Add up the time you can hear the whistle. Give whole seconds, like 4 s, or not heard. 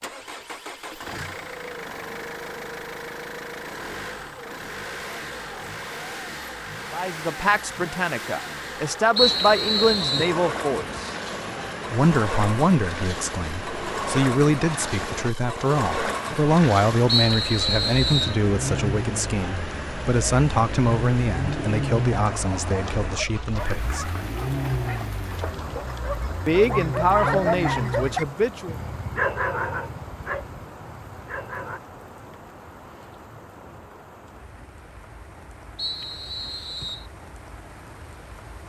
4 s.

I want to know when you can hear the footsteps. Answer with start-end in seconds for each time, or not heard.
not heard.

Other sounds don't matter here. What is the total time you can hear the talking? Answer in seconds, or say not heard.
19 s.